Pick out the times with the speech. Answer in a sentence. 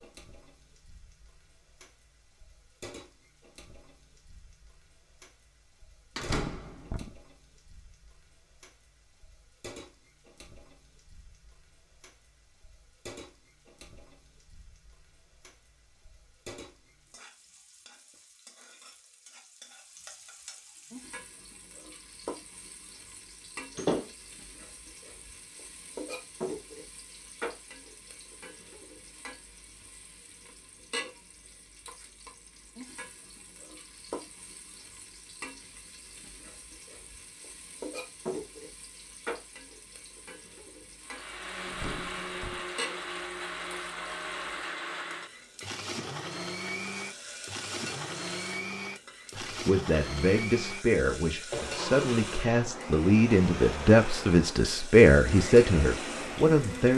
You can hear the speech from 49.4 to 56.9 s.